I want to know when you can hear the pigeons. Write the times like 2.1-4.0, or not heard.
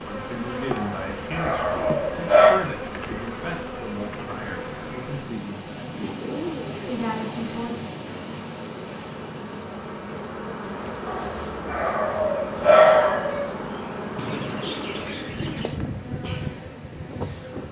6.0-6.8, 14.2-15.8.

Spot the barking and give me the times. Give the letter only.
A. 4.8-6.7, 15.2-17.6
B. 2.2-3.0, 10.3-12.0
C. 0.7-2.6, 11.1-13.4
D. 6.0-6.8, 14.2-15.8
C.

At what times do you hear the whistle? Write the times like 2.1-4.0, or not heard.
not heard.